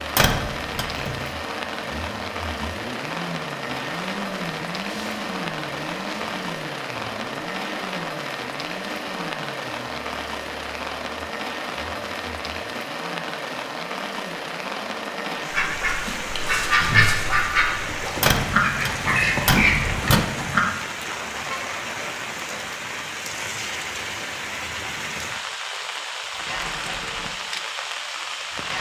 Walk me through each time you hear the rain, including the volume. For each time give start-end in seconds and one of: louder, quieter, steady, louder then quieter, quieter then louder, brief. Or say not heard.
0.0-28.7 steady.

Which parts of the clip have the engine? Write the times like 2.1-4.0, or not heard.
0.0-15.8, 26.3-28.7.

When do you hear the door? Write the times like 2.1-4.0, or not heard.
0.1-1.3, 18.2-20.2.